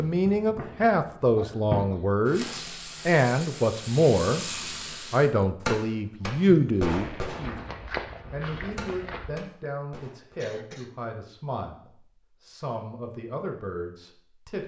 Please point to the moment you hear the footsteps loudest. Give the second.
8 s.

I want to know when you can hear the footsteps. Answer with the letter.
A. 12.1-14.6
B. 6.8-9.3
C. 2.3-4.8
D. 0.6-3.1
B.